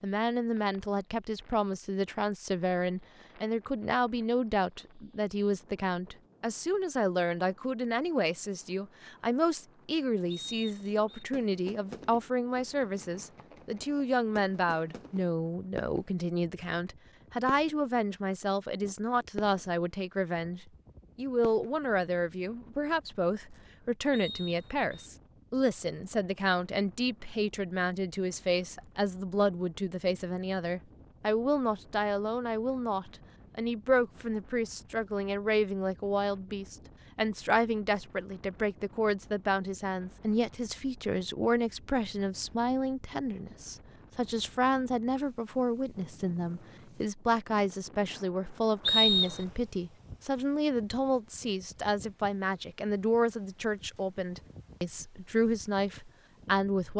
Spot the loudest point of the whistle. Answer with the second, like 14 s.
49 s.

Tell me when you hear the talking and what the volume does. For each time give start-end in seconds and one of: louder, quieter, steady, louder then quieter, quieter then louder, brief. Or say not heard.
0.0-56.9 steady.